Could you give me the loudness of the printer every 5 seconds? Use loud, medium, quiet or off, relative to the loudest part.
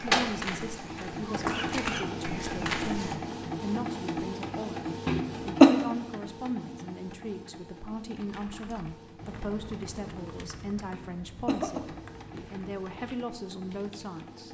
loud, medium, quiet.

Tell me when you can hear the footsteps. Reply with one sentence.
The footsteps can be heard from 0.0 to 3.1 s.